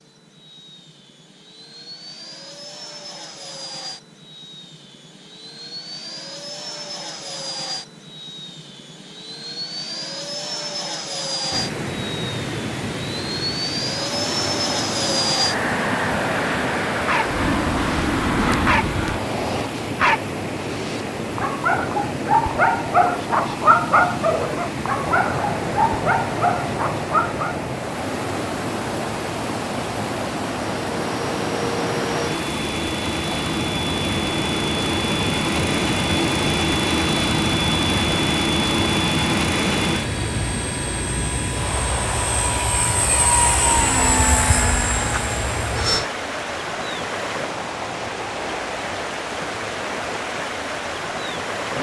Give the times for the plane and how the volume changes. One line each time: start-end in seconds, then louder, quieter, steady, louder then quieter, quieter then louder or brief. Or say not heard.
0.0-19.7 louder
24.9-46.0 louder.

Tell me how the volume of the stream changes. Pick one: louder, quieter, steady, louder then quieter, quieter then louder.
steady.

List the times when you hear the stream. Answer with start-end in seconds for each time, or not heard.
11.5-51.7.